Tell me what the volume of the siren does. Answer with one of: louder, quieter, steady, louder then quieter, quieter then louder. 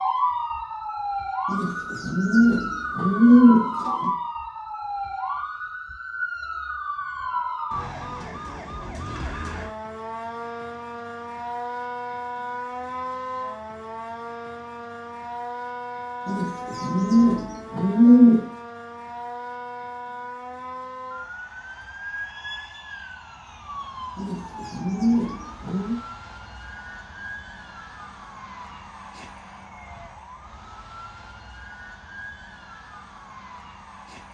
quieter.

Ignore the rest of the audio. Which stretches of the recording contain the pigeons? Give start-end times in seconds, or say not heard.
1.5-4.1, 16.2-18.4, 24.1-26.0.